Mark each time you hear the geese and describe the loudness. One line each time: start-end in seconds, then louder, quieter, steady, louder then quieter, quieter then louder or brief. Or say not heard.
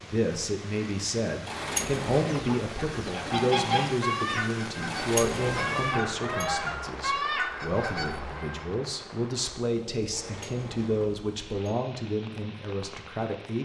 2.3-8.7 steady.